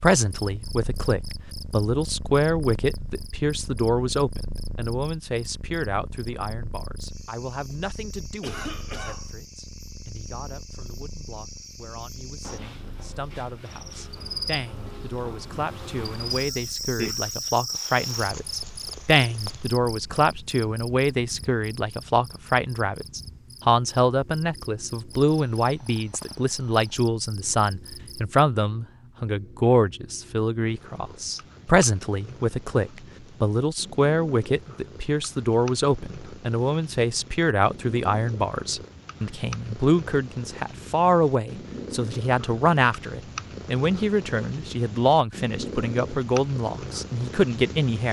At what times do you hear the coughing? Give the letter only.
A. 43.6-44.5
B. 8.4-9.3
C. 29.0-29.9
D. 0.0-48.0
B.